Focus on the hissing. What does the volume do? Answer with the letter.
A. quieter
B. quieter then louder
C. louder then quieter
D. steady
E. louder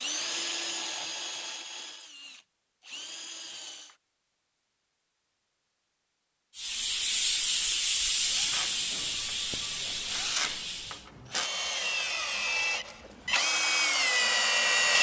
A.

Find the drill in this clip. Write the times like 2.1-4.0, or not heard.
0.0-4.0, 8.1-14.9.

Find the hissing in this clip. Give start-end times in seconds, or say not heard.
6.5-11.1.